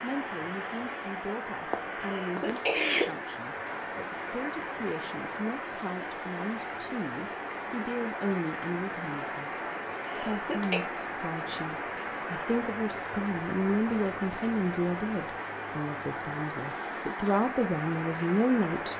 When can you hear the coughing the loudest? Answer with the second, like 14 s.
3 s.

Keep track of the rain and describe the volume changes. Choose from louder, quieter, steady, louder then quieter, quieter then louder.
steady.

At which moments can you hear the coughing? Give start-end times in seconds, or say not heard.
2.0-3.0, 10.1-10.8.